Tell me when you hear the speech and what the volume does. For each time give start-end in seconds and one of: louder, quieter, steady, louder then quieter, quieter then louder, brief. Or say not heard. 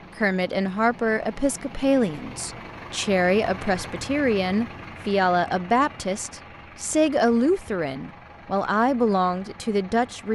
0.1-10.3 steady.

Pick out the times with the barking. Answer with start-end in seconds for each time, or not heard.
not heard.